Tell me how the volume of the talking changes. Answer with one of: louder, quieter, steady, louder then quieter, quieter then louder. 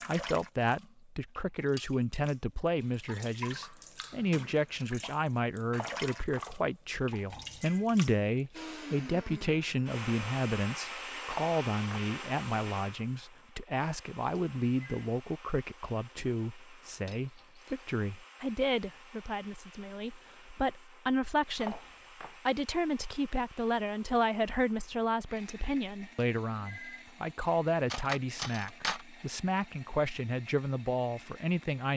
steady.